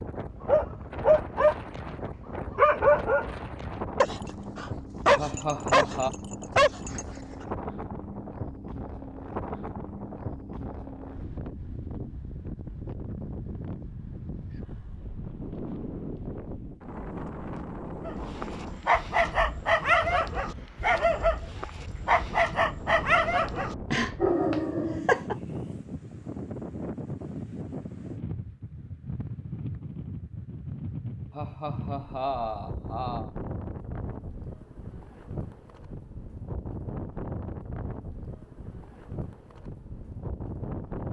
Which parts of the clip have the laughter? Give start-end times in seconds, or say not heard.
5.2-6.1, 31.3-33.3.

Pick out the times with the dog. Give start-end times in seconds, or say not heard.
0.4-7.0, 18.1-25.4.